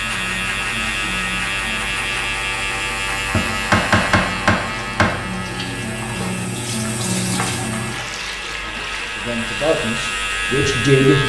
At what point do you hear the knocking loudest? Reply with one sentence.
The loudest moment of the knocking is at 4 seconds.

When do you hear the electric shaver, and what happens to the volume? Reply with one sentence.
The electric shaver can be heard from 0.0 to 11.2 s, getting quieter then louder.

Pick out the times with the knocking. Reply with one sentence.
The knocking can be heard from 3.3 to 5.2 s.